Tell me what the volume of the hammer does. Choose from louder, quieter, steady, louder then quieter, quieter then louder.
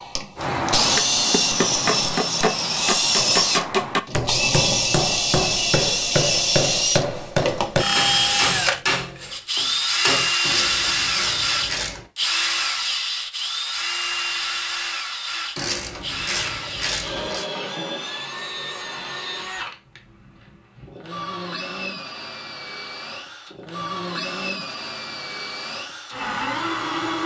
steady.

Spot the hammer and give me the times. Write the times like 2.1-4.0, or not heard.
0.3-10.3.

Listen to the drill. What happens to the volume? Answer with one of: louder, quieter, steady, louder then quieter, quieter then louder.
quieter.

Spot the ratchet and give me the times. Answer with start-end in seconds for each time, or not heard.
10.4-12.1, 15.6-17.4.